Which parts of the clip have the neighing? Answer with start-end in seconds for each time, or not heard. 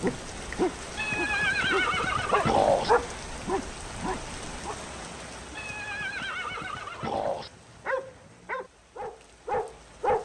0.9-2.9, 5.5-7.5.